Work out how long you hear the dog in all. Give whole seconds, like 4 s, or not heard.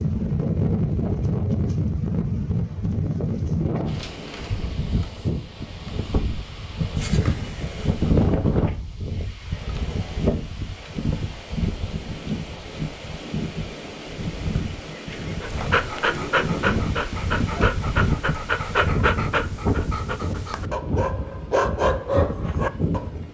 8 s.